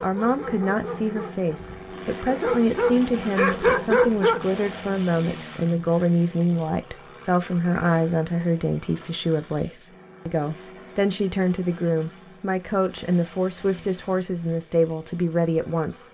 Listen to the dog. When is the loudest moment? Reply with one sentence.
The volume of the dog peaks at 4 seconds.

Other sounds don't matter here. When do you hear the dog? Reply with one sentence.
You can hear the dog from 0.0 to 4.5 s.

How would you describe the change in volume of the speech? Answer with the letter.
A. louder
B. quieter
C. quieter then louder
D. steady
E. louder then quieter
D.